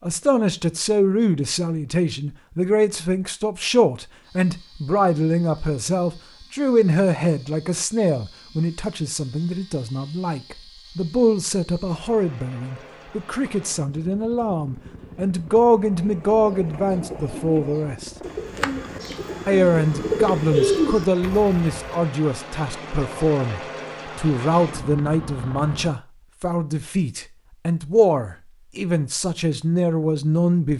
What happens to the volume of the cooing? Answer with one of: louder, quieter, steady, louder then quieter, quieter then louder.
louder.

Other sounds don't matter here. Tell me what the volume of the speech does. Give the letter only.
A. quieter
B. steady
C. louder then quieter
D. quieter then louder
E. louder
B.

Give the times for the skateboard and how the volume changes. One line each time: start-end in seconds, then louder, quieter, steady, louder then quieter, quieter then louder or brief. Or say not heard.
not heard.